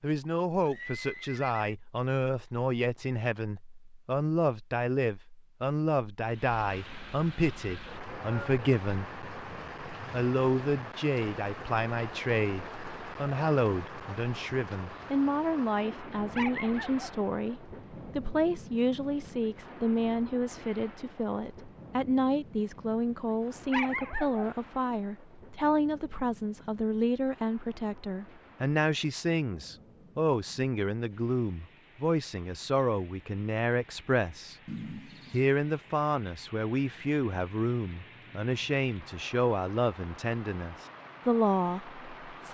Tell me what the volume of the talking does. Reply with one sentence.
The loudness of the talking stays about the same.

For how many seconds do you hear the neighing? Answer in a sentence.
The neighing can be heard for 2 seconds in total.